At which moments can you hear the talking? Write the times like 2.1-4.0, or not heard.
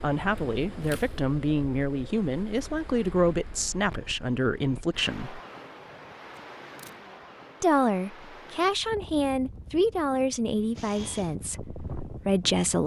0.0-5.4, 7.6-12.8.